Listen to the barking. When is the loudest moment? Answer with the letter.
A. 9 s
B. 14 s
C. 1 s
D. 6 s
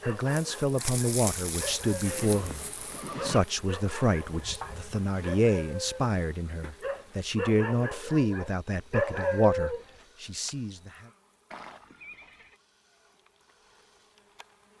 A.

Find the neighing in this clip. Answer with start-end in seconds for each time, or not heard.
2.0-3.4, 11.5-12.6.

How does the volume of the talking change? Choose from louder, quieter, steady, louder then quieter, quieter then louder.
steady.